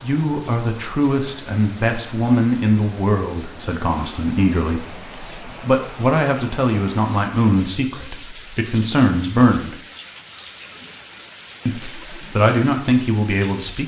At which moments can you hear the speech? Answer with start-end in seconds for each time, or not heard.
0.0-9.8, 11.7-13.8.